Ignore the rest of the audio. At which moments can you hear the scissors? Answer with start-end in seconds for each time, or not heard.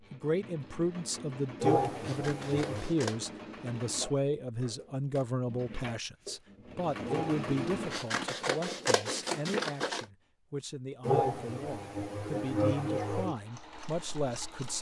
2.0-3.3, 7.9-10.1.